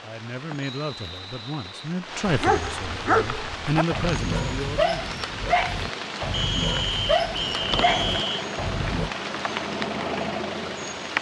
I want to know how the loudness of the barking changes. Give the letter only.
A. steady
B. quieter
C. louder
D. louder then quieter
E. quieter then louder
A.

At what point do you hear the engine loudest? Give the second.
10 s.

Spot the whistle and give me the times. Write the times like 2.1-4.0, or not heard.
0.6-1.9, 6.3-8.4.